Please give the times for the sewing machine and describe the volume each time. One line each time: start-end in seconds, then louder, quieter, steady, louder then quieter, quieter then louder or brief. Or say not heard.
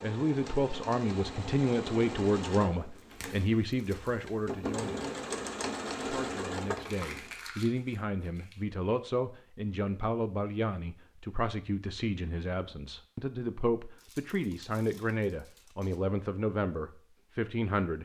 0.0-7.4 quieter then louder.